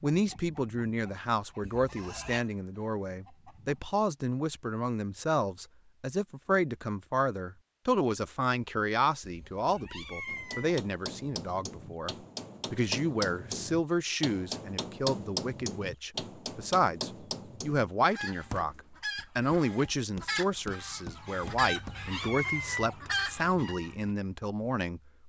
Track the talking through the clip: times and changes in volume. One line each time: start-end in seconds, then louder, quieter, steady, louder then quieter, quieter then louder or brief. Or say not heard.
0.0-25.0 steady.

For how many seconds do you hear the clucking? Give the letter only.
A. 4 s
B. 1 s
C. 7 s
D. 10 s
D.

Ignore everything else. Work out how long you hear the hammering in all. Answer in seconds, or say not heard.
12 s.